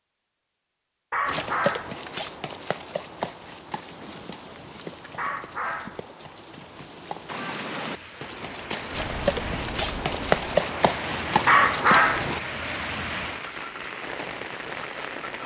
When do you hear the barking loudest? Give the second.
12 s.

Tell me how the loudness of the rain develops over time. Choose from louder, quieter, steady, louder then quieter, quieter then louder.
louder.